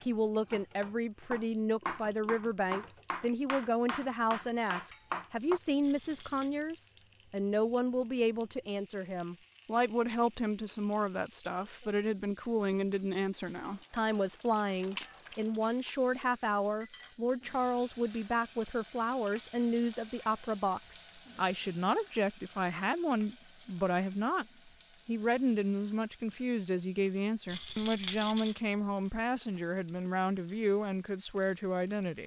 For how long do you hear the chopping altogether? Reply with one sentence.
You can hear the chopping for 5 seconds altogether.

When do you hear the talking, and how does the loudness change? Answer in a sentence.
The talking can be heard from 0.0 to 24.4 s, at a steady volume; and from 25.1 to 32.2 s, at a steady volume.